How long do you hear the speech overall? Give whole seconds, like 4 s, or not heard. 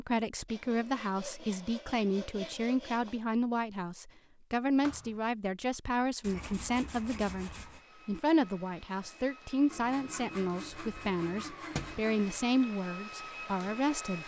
14 s.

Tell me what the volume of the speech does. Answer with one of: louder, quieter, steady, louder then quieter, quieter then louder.
steady.